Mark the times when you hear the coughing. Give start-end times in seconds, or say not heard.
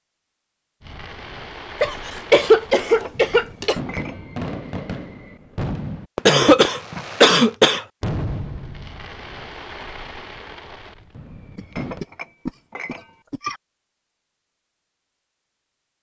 1.8-3.8, 6.2-7.8, 11.6-13.6.